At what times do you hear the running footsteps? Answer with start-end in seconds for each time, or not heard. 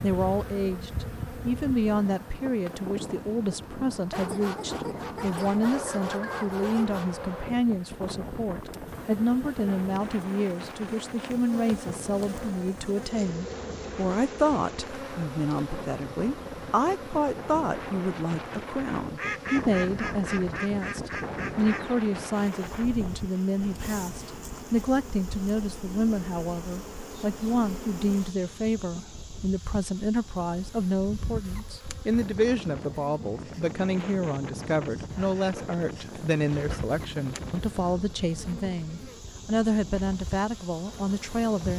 not heard.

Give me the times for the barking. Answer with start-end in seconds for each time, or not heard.
4.1-7.1, 35.1-36.8.